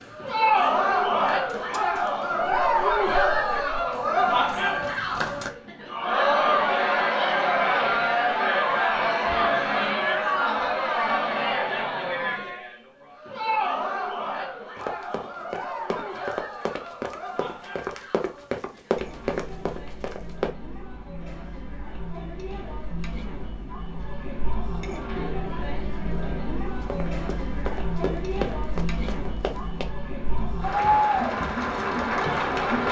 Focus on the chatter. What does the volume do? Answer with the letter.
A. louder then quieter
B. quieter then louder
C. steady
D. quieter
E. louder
B.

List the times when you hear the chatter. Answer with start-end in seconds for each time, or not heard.
0.1-32.8.